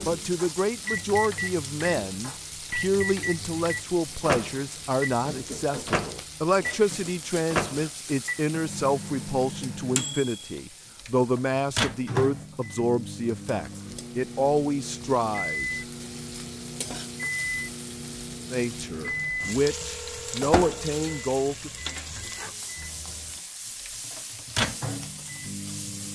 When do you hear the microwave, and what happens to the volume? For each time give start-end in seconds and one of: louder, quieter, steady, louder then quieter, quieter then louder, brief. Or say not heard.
0.0-26.0 steady.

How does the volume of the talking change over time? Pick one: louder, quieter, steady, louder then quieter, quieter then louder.
steady.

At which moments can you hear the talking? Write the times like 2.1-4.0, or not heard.
0.0-15.8, 18.5-21.7.